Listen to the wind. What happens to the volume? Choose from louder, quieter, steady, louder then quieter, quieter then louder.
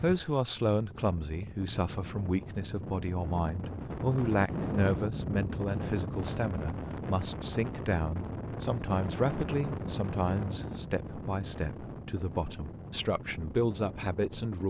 louder then quieter.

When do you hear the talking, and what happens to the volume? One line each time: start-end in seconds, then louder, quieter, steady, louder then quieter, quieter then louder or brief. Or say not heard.
0.0-14.6 steady.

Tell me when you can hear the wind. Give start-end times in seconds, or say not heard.
0.0-14.6.